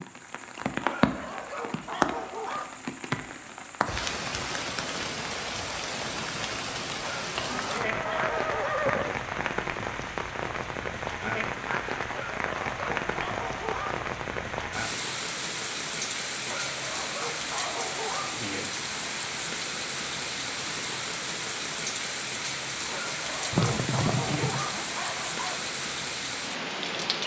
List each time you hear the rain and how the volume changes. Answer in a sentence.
The rain can be heard from 0.0 to 27.2 s, at a steady volume.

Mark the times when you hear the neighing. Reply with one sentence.
You can hear the neighing from 7.5 to 9.2 s and from 23.5 to 24.9 s.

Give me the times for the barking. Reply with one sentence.
The barking can be heard from 0.8 to 2.7 s, from 7.0 to 8.9 s, from 12.1 to 14.0 s, from 16.4 to 18.4 s and from 22.9 to 25.6 s.